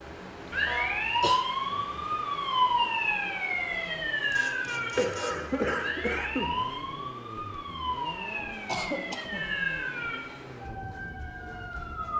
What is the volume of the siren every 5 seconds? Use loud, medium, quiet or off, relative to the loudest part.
loud, medium, medium.